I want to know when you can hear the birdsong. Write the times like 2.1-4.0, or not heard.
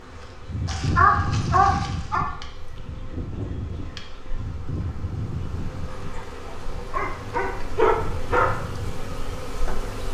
not heard.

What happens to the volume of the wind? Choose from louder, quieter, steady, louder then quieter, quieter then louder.
quieter.